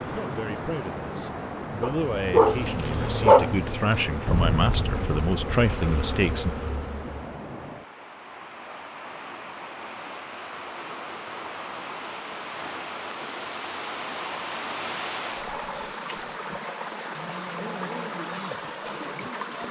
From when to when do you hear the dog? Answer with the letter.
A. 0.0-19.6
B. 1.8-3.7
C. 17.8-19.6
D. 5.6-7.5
B.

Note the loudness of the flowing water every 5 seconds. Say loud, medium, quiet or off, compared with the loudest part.
loud, medium, loud, loud.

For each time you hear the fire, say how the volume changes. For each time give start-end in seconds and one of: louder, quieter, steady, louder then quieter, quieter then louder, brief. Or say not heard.
not heard.